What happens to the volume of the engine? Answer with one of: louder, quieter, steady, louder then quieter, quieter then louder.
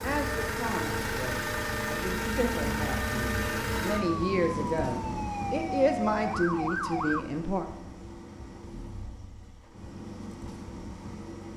quieter.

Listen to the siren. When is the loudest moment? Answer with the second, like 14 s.
7 s.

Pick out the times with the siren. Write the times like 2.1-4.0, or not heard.
0.2-7.2.